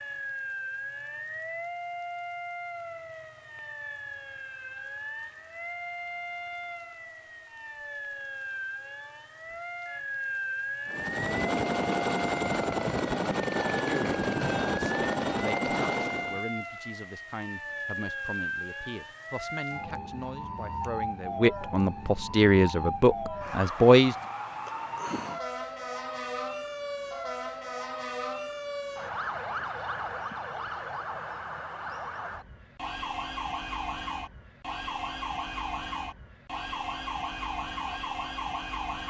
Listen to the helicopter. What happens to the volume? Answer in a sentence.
The loudness of the helicopter stays about the same.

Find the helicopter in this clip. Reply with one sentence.
The helicopter can be heard from 10.8 to 16.4 s.